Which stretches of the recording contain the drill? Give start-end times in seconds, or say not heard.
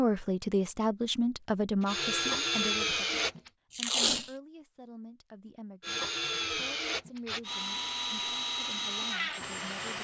1.8-3.5, 5.8-9.9.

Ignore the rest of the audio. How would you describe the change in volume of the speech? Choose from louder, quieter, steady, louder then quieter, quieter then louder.
quieter.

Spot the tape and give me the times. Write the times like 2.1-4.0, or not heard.
3.7-4.3.